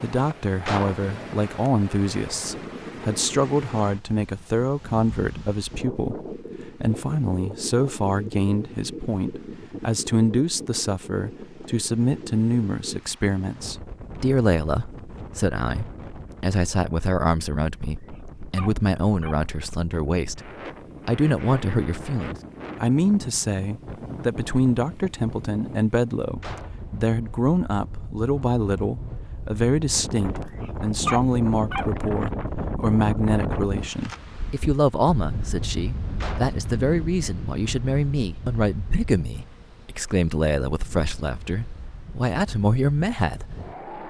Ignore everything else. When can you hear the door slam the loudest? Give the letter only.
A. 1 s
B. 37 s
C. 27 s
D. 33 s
A.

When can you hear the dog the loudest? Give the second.
31 s.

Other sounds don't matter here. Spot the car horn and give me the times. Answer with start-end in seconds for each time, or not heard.
not heard.